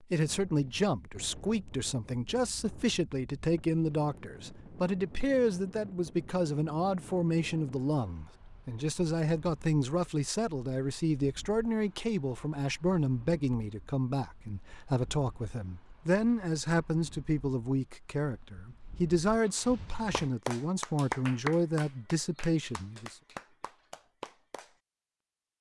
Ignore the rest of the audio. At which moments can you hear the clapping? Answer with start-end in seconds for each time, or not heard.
20.1-24.8.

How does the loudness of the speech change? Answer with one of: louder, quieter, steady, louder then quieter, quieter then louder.
steady.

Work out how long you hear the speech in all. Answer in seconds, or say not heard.
23 s.